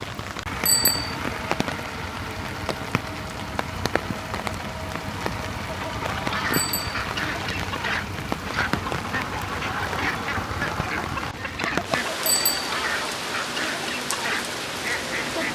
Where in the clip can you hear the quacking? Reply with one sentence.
You can hear the quacking from 5.7 to 15.4 s.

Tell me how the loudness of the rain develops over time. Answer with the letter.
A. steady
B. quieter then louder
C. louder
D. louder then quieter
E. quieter
A.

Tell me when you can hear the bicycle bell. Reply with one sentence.
The bicycle bell can be heard from 0.7 to 1.1 s, from 6.5 to 7.0 s and from 12.2 to 12.7 s.